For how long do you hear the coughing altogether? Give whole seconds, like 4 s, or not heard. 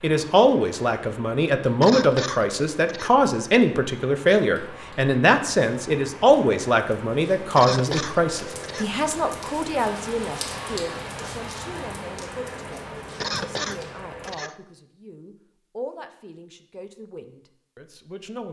4 s.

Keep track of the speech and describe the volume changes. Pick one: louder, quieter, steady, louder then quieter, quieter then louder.
quieter.